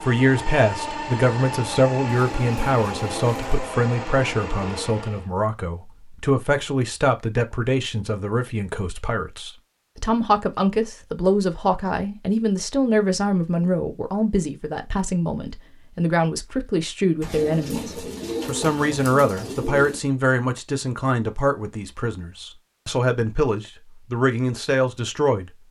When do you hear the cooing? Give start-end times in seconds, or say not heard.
2.1-3.6, 17.2-20.0.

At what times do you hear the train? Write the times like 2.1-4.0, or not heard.
0.0-5.3.